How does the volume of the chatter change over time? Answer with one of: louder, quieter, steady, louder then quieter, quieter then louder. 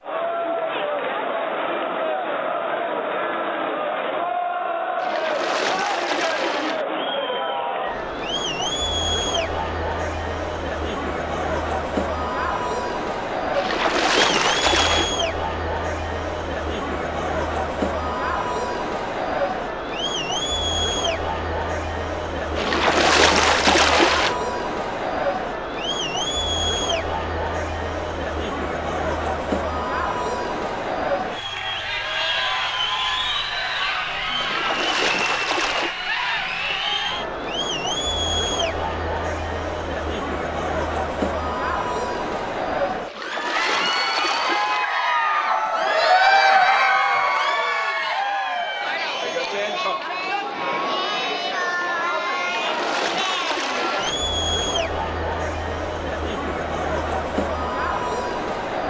steady.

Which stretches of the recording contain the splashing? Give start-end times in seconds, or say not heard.
5.0-6.8, 13.5-15.2, 22.6-24.4, 34.4-36.0, 43.0-44.9, 52.4-54.2.